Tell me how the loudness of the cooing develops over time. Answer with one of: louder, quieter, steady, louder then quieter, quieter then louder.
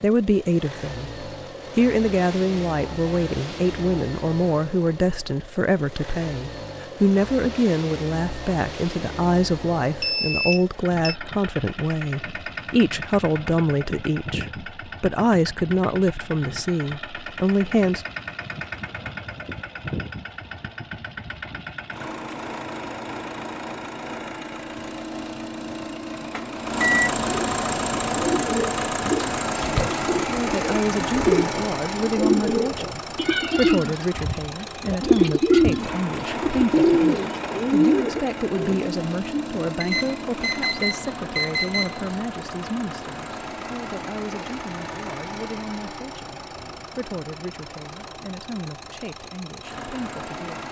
louder.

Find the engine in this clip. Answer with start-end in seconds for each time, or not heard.
0.0-50.6.